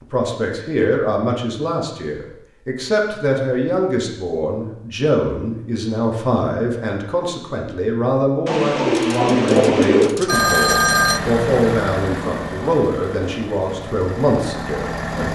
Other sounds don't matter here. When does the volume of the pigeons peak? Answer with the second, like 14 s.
10 s.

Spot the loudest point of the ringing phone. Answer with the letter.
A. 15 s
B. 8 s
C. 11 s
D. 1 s
C.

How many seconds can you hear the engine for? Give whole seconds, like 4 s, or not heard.
5 s.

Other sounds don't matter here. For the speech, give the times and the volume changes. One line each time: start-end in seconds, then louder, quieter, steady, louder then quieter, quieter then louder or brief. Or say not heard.
0.0-15.2 steady.